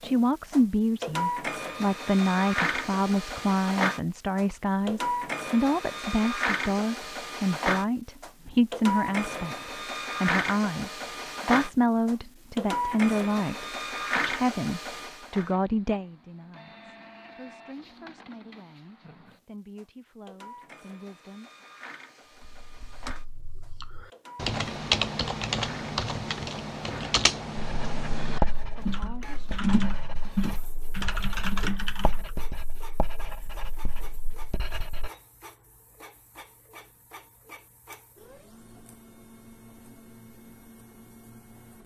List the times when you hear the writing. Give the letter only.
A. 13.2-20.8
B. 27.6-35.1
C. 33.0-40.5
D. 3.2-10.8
B.